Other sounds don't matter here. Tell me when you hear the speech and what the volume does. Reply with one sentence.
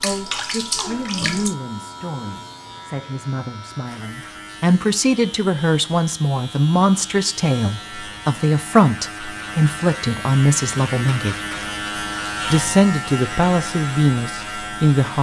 The speech can be heard from 0.0 to 11.3 s, getting louder; and briefly from 12.5 to 15.1 s.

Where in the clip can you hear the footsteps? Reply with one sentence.
You can't hear the footsteps here.